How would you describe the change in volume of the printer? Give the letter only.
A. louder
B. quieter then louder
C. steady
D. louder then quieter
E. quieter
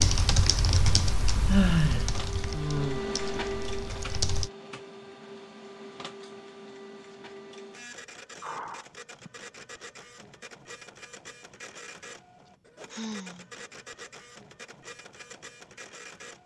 E.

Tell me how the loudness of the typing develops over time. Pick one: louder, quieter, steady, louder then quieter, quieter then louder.
quieter.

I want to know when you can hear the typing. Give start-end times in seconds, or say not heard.
0.0-4.5.